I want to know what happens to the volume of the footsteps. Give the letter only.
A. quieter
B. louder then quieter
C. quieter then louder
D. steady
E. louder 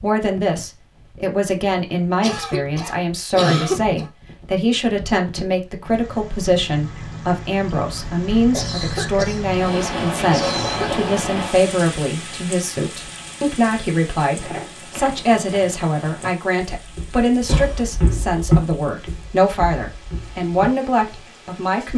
B.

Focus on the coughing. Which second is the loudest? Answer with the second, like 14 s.
4 s.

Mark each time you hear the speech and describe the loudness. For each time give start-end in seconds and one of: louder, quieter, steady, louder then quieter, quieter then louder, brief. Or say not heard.
0.0-21.9 steady.